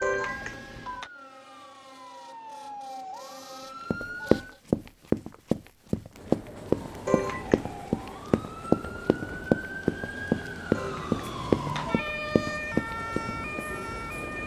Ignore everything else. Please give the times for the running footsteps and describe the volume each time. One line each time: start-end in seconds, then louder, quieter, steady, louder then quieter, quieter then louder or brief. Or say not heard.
3.9-13.6 steady.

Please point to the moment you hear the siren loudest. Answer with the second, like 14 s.
12 s.